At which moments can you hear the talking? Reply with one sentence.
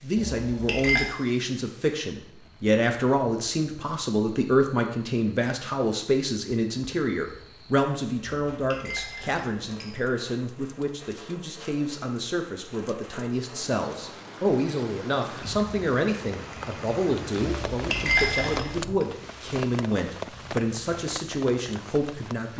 The talking can be heard from 0.0 to 22.5 s.